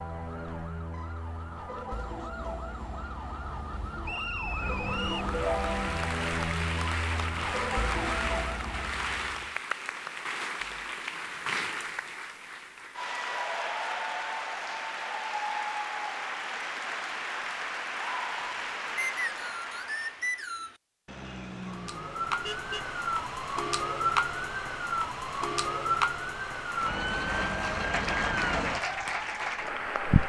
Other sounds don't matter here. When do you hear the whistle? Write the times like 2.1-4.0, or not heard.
4.0-5.3, 18.9-20.8.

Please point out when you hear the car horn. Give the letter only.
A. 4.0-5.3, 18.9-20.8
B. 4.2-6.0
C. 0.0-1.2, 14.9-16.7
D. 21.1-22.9
D.